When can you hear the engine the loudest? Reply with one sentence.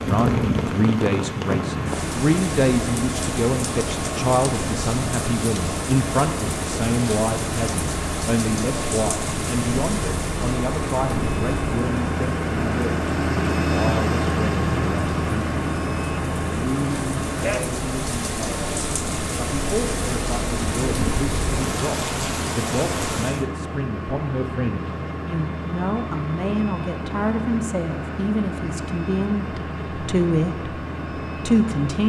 The loudest moment of the engine is at 14 seconds.